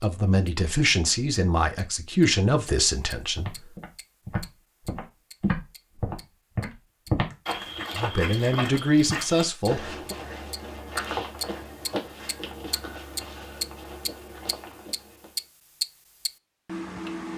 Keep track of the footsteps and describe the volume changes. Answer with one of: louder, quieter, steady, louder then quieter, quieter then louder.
quieter.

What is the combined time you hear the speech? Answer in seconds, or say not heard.
6 s.